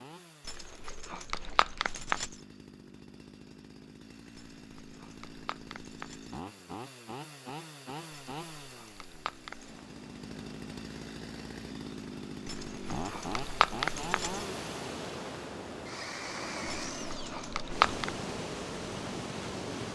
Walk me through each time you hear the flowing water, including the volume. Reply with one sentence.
The flowing water can be heard from 9.4 to 19.9 s, getting louder.